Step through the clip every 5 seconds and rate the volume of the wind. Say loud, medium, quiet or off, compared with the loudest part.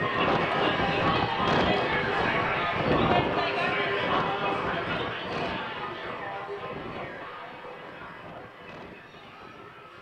loud, quiet.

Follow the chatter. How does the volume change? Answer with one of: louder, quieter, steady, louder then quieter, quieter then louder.
quieter.